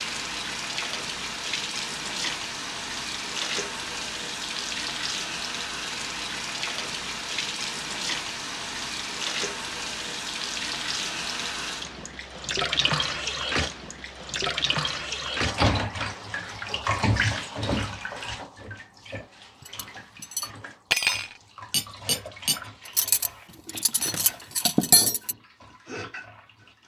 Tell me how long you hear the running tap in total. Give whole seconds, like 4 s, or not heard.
27 s.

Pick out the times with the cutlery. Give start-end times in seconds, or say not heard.
19.6-25.4.